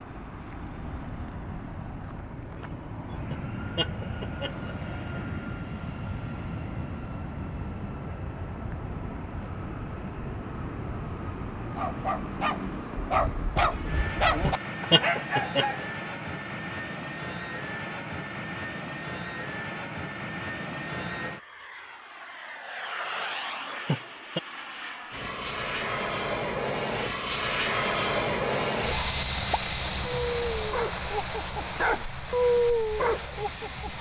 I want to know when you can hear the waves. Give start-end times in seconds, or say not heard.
not heard.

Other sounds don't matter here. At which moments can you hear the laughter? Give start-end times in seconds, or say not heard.
3.1-5.2, 14.2-15.8, 23.1-24.4.